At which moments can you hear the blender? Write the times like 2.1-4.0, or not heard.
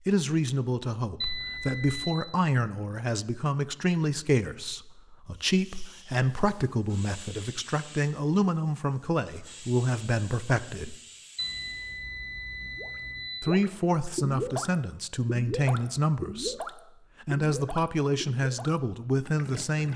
not heard.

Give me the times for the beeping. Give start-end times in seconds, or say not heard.
1.2-2.0, 11.3-13.3.